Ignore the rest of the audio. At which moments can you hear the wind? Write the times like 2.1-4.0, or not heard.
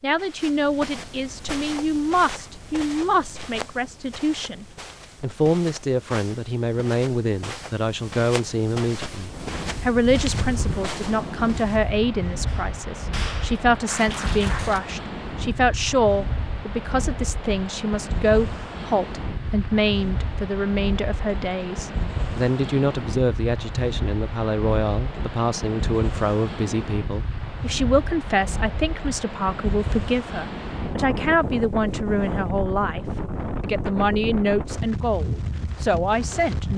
9.2-36.7.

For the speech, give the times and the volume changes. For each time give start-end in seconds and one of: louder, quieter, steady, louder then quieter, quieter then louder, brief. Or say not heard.
0.0-36.7 steady.